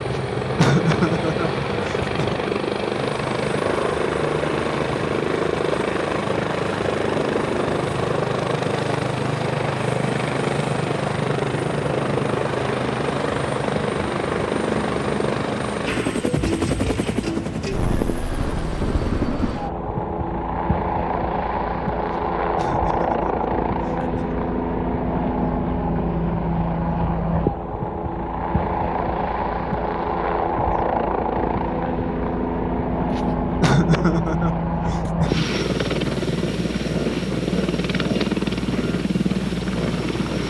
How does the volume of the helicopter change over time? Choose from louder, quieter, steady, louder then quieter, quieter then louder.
steady.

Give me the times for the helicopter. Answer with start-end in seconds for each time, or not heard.
0.0-40.4.